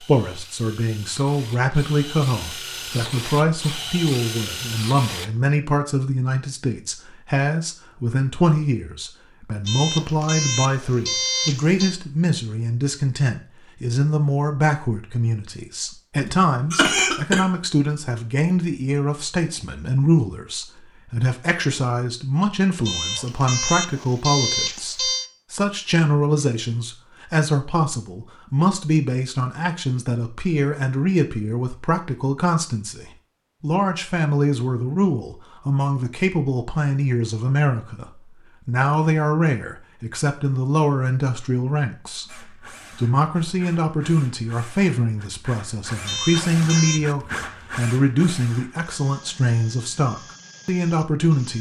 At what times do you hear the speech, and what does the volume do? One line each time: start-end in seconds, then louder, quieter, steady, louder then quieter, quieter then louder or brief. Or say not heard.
0.0-51.5 steady.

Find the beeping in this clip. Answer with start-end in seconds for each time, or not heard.
9.7-11.9, 22.9-25.3, 46.0-47.0.